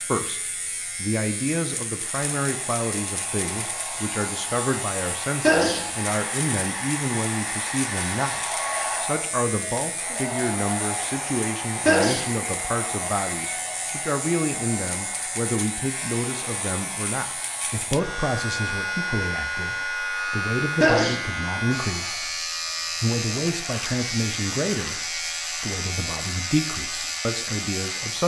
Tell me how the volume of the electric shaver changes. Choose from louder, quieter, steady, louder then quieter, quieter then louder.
louder.